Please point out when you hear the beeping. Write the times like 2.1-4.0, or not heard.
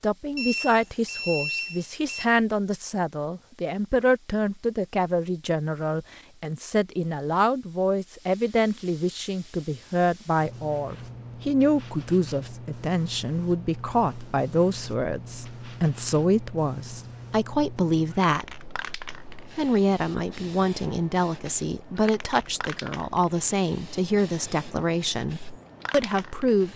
0.3-2.2.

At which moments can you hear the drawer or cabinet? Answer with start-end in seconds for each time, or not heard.
not heard.